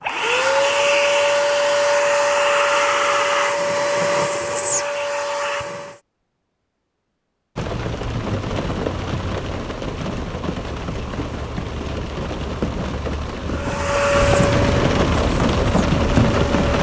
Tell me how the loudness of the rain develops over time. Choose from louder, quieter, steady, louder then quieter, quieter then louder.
louder.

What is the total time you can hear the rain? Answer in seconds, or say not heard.
9 s.